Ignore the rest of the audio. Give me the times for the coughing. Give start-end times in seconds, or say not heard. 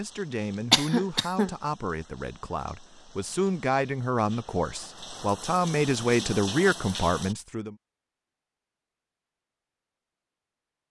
0.7-1.5.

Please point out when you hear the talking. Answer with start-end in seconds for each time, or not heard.
0.0-7.8.